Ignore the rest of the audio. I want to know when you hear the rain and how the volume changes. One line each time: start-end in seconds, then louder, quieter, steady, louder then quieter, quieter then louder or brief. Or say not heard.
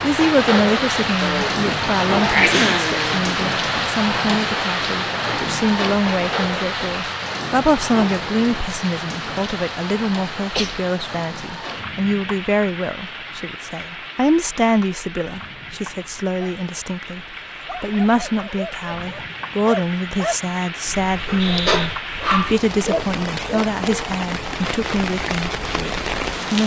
0.0-26.6 quieter then louder.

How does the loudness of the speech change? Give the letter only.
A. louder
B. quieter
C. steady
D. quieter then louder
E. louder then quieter
C.